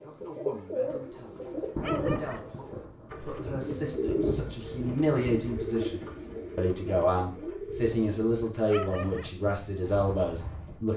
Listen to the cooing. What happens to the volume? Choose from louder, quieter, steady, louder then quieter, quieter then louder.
quieter.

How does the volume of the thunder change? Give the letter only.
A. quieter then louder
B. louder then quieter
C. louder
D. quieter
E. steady
A.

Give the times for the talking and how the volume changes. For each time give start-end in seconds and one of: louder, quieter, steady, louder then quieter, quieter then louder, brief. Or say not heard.
0.0-10.9 louder.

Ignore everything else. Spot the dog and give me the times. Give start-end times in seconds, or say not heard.
1.8-2.5, 8.7-9.3.